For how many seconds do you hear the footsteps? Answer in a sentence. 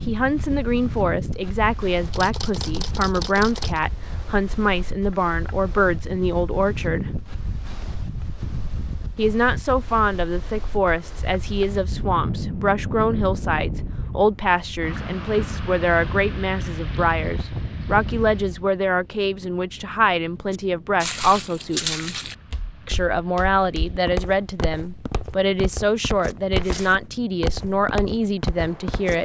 You can hear the footsteps for 9 seconds altogether.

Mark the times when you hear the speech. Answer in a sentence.
The speech can be heard from 0.1 to 7.2 s, from 9.2 to 22.1 s and from 22.9 to 29.2 s.